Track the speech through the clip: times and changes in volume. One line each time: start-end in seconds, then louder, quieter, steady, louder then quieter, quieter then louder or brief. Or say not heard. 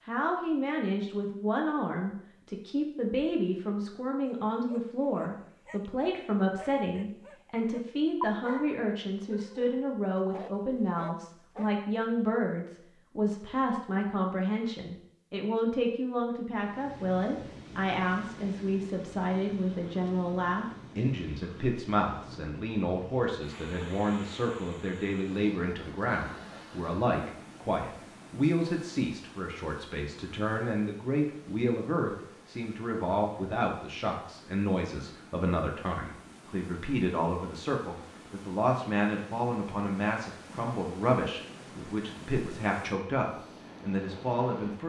0.1-44.8 steady.